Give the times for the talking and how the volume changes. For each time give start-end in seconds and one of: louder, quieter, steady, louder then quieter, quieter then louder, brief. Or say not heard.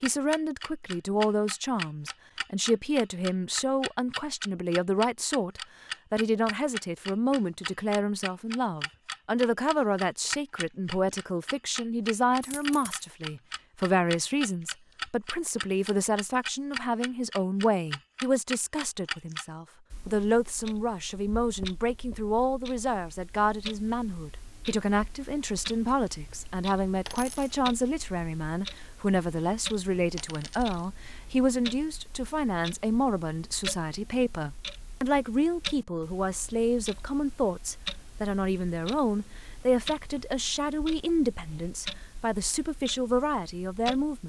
0.0-44.2 steady.